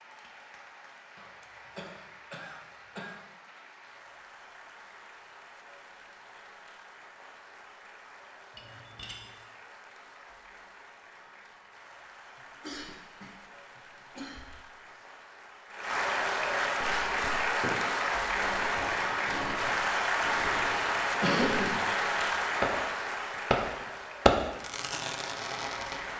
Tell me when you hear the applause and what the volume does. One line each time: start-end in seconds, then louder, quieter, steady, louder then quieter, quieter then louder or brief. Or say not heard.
0.0-26.1 louder.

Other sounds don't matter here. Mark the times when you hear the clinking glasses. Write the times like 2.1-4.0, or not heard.
8.6-9.3.